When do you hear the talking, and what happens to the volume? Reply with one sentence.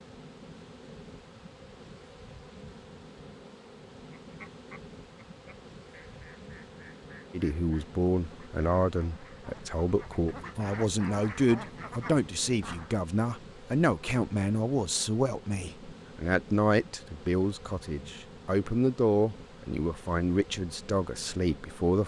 The talking can be heard from 7.3 to 22.0 s, at a steady volume.